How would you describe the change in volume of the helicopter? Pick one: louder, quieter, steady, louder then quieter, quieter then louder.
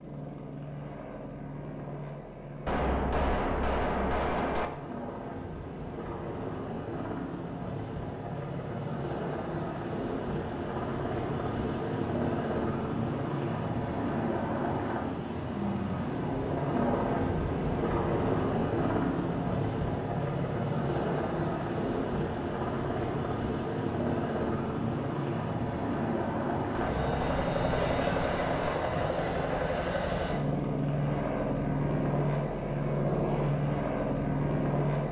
louder.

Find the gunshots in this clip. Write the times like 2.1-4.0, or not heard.
2.6-4.7, 26.7-28.8.